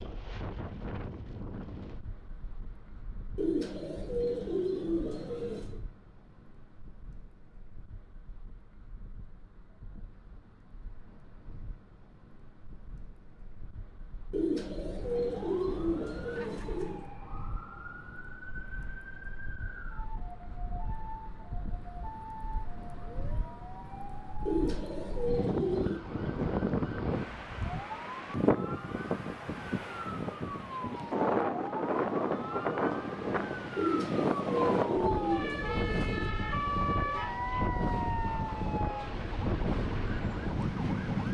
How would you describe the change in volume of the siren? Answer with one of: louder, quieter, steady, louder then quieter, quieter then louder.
louder.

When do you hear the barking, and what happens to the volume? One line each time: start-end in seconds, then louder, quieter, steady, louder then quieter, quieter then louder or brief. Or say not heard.
not heard.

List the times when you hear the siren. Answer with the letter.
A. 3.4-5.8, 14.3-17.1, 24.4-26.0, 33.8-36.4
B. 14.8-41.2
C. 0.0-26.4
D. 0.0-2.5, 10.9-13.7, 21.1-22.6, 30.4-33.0
B.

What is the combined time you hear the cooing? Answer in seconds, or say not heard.
9 s.